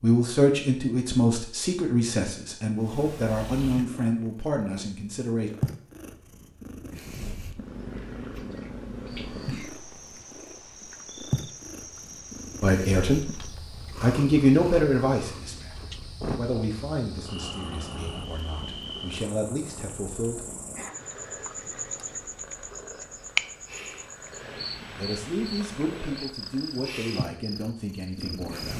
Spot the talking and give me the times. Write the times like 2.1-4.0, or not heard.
0.0-5.5, 12.6-20.4, 24.9-28.7.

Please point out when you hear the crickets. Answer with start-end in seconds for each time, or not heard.
9.1-28.6.